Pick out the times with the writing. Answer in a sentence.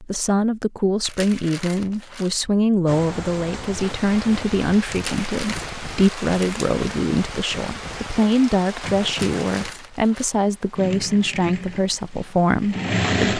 You can't hear the writing here.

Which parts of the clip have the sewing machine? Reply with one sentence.
The sewing machine can be heard from 10.8 to 13.3 s.